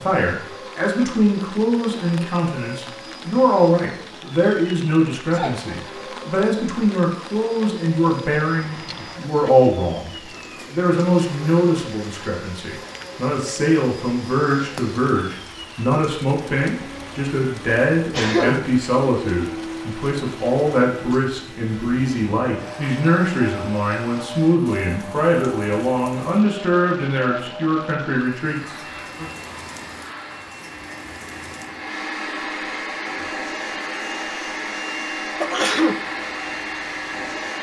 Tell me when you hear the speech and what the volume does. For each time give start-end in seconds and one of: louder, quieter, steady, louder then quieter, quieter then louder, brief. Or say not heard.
0.0-29.3 steady.